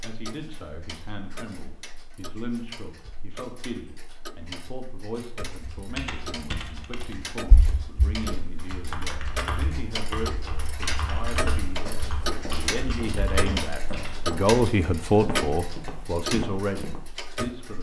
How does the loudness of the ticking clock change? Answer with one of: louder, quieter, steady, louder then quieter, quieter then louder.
louder.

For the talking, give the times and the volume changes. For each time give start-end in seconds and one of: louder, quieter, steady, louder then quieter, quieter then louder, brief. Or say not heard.
0.0-17.7 louder.